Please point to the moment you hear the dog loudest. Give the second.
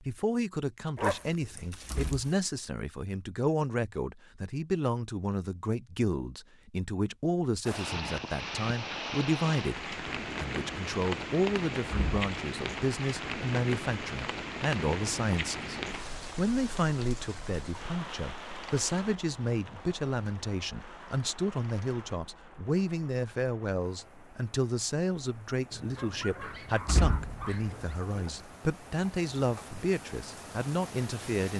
1 s.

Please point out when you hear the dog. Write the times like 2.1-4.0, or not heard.
0.9-2.3, 25.7-27.9.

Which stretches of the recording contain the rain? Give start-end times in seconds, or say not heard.
7.7-31.5.